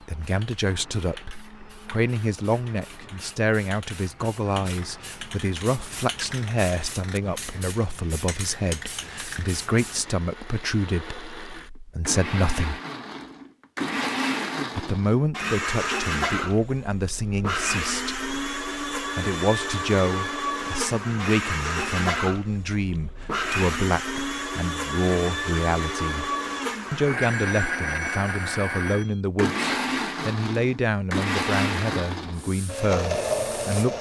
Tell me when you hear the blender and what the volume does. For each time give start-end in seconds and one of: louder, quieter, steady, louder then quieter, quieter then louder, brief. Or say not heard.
0.0-33.9 louder.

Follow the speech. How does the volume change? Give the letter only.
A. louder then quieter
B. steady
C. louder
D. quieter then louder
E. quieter
B.